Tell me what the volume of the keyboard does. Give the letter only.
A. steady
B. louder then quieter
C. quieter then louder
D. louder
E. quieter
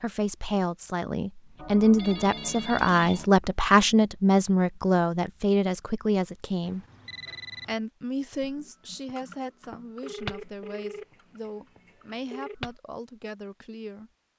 B.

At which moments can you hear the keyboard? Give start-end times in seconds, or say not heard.
8.4-12.8.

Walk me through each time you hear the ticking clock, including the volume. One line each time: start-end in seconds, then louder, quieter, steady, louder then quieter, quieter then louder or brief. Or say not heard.
not heard.